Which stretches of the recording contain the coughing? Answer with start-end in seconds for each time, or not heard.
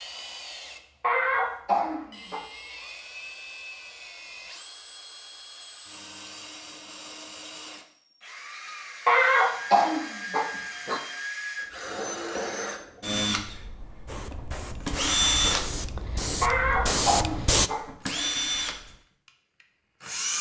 1.0-2.4, 9.1-11.0, 16.4-18.3.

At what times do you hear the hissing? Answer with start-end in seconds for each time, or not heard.
14.1-17.7.